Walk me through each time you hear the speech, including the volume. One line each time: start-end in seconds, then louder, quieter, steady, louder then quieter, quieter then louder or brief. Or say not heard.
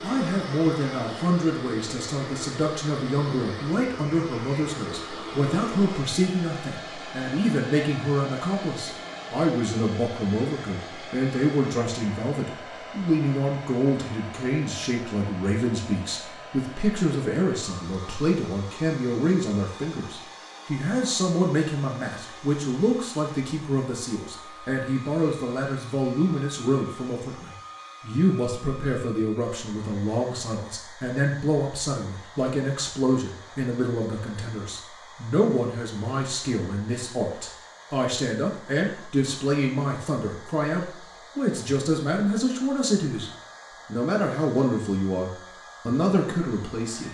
0.0-47.0 steady.